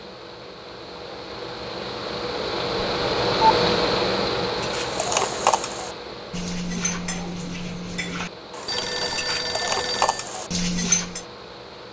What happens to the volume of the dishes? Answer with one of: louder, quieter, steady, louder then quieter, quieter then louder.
quieter then louder.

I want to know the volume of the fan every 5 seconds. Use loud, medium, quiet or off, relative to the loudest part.
loud, medium, quiet.